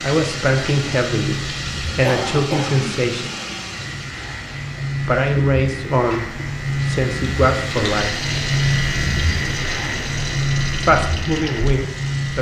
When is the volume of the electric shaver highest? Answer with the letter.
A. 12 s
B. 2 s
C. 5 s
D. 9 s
D.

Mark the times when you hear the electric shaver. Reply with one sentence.
The electric shaver can be heard from 0.0 to 12.3 s.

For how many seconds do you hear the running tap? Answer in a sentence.
The running tap can be heard for 12 seconds in total.